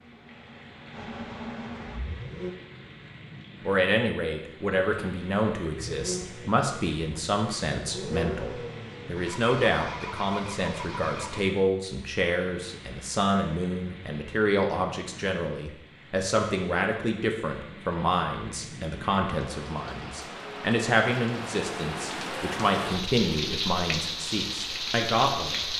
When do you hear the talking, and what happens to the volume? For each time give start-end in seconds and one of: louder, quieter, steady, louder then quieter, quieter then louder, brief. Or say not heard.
3.6-25.6 steady.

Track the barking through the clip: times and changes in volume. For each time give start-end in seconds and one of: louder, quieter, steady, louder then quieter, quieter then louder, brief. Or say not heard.
not heard.